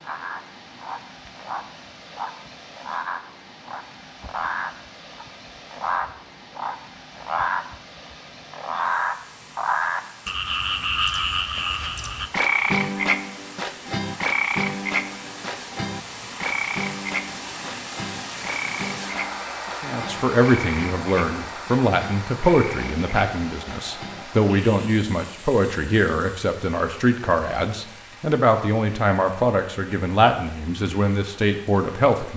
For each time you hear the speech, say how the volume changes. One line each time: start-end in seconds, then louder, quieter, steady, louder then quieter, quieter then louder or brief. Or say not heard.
19.8-32.3 steady.